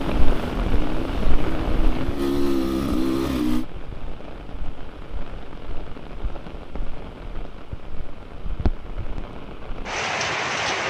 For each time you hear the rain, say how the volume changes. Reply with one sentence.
You can hear the rain from 0.0 to 10.8 s, getting quieter then louder.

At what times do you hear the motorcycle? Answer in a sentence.
The motorcycle can be heard from 0.0 to 3.6 s.